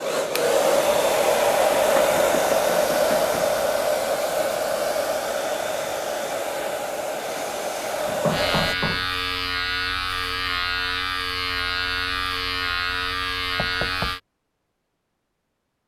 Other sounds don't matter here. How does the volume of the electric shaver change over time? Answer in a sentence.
The volume of the electric shaver stays about the same.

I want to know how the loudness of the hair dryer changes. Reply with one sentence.
The loudness of the hair dryer goes down.